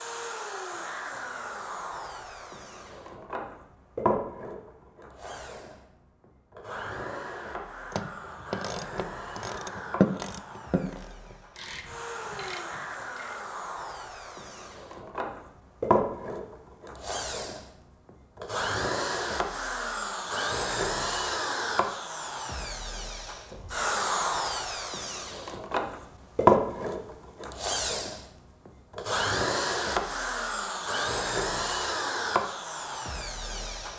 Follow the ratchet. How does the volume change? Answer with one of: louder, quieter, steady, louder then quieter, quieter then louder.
louder then quieter.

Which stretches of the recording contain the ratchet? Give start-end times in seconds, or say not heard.
7.9-13.4.